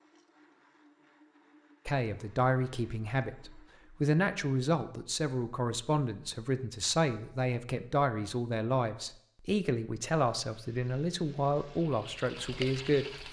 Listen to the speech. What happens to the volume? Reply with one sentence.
The volume of the speech stays about the same.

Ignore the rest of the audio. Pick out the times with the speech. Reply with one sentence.
The speech can be heard from 1.9 to 13.2 s.